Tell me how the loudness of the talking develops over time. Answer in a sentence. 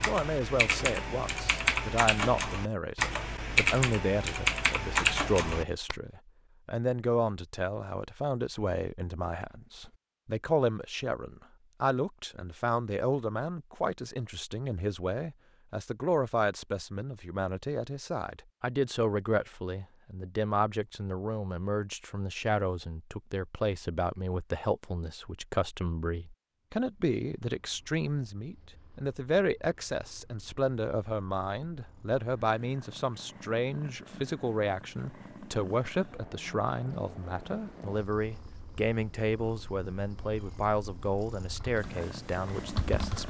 The loudness of the talking stays about the same.